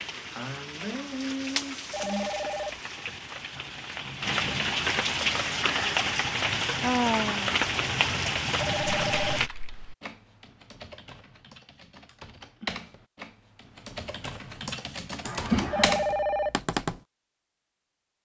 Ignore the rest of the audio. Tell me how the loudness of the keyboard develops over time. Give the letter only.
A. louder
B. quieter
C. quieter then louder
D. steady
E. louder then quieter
A.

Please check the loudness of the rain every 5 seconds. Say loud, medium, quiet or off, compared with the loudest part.
medium, loud, off, off.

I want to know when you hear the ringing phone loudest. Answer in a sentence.
The loudest moment of the ringing phone is at 16 seconds.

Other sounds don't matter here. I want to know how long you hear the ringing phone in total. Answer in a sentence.
The ringing phone can be heard for 3 seconds in total.